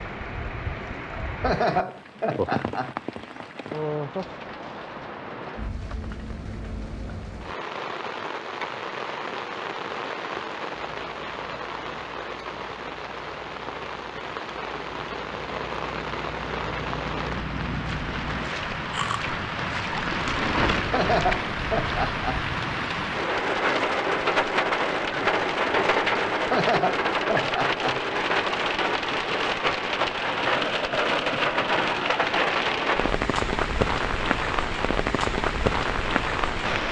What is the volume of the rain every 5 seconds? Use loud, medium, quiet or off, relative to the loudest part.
medium, medium, medium, medium, loud, loud, loud, loud.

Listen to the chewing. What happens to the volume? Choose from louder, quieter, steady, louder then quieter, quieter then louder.
louder.